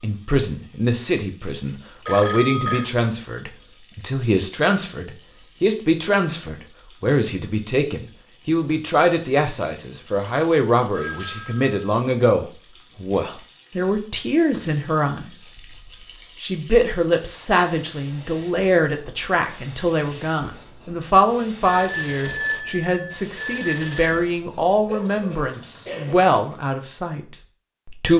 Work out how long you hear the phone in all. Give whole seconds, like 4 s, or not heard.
4 s.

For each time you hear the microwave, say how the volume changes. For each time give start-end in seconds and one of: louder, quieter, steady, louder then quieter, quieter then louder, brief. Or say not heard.
not heard.